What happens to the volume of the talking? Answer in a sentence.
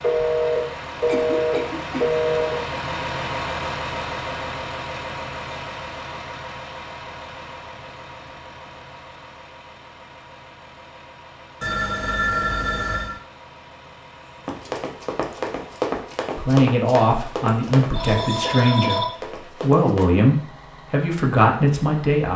The volume of the talking stays about the same.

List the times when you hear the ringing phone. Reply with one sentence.
The ringing phone can be heard from 0.0 to 2.5 s, from 11.6 to 13.2 s and from 17.9 to 19.1 s.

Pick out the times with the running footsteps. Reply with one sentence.
You can hear the running footsteps from 14.4 to 20.1 s.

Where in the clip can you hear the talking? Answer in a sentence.
The talking can be heard from 16.4 to 22.3 s.